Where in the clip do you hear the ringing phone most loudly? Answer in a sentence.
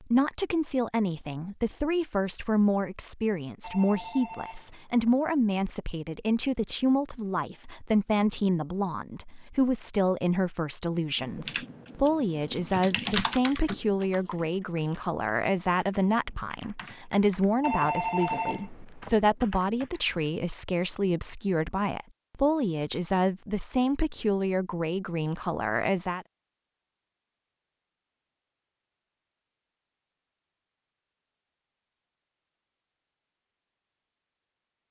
The loudest moment of the ringing phone is at 18 seconds.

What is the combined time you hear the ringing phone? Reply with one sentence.
You can hear the ringing phone for 3 seconds altogether.